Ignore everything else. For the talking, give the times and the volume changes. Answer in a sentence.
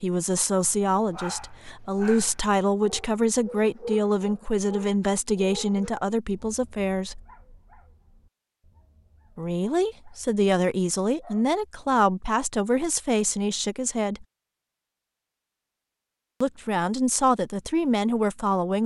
The talking can be heard from 0.0 to 7.2 s, at a steady volume; from 9.3 to 14.2 s, at a steady volume; and briefly from 16.4 to 18.8 s.